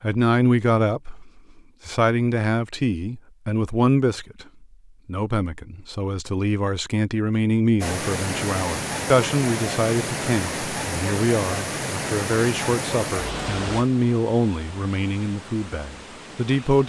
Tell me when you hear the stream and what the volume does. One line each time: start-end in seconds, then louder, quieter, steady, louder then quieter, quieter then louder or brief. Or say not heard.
7.8-16.8 quieter.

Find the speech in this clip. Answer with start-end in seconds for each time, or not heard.
0.0-16.8.